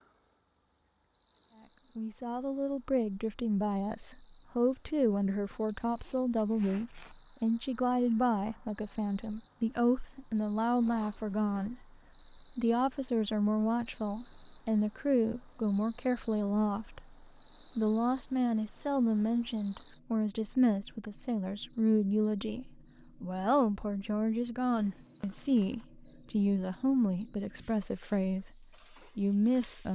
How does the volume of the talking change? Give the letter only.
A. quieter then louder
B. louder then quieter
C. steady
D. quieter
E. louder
C.